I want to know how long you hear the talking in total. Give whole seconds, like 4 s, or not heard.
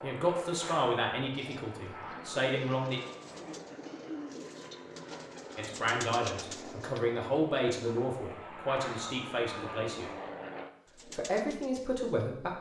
9 s.